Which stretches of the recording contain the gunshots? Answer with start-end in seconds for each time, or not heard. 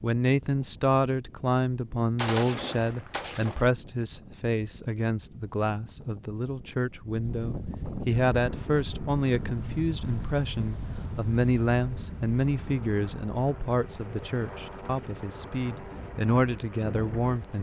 2.1-3.6.